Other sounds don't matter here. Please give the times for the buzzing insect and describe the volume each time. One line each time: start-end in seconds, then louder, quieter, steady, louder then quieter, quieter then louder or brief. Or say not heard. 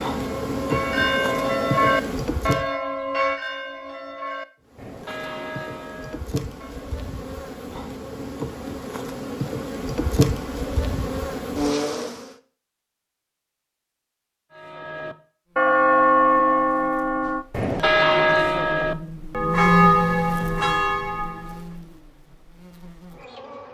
0.0-2.6 brief
4.7-12.3 louder
15.5-23.6 louder then quieter.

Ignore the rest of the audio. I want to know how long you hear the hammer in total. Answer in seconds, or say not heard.
not heard.